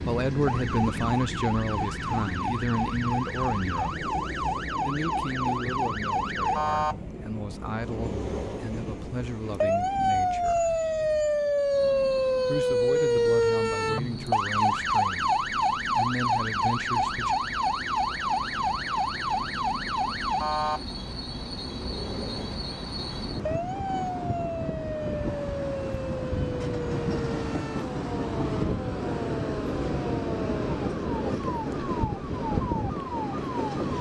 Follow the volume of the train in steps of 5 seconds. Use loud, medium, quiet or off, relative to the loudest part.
medium, medium, quiet, medium, medium, loud, loud.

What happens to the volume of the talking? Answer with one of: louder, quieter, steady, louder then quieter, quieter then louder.
quieter.